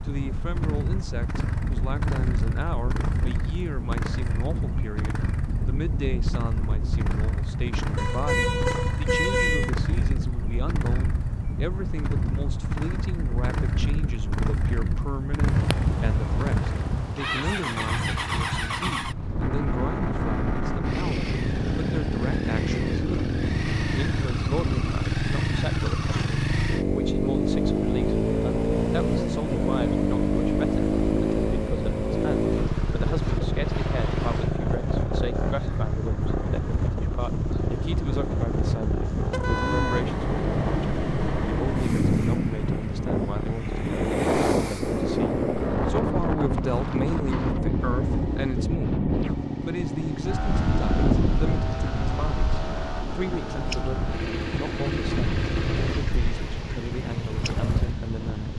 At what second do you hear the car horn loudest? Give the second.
9 s.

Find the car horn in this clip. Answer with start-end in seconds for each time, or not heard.
8.0-9.7, 39.3-40.0.